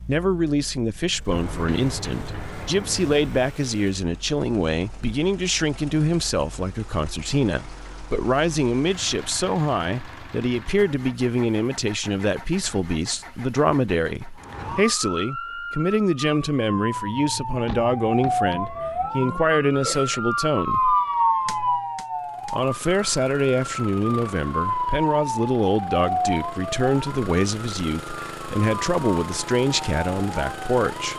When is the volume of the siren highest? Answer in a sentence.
The loudest moment of the siren is at 21 seconds.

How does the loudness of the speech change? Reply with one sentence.
The loudness of the speech stays about the same.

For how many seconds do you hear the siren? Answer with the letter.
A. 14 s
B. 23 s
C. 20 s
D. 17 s
D.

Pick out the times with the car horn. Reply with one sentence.
The car horn can't be heard in this clip.